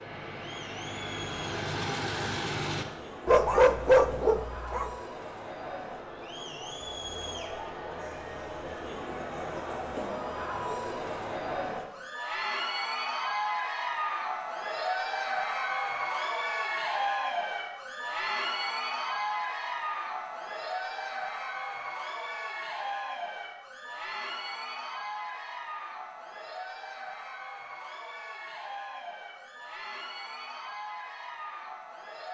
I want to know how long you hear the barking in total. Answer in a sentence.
You can hear the barking for 2 seconds altogether.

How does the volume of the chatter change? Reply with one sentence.
The loudness of the chatter goes up, then down.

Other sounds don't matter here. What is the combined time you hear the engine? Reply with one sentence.
You can hear the engine for 3 seconds altogether.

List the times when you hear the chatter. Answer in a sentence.
The chatter can be heard from 0.0 to 32.2 s.